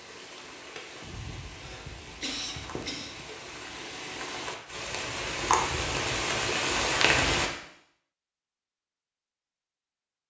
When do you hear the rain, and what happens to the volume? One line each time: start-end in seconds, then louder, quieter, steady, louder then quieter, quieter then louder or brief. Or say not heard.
0.0-7.5 louder.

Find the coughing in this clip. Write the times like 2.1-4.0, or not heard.
1.6-3.1.